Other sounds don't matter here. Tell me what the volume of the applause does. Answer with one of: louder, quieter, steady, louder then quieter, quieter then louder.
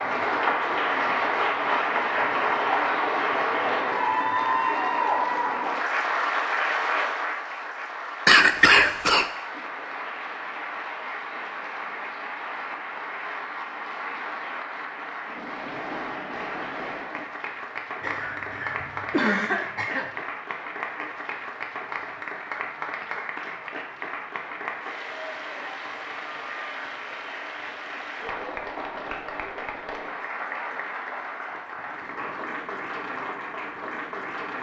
quieter.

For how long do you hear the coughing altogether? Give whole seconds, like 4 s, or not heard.
3 s.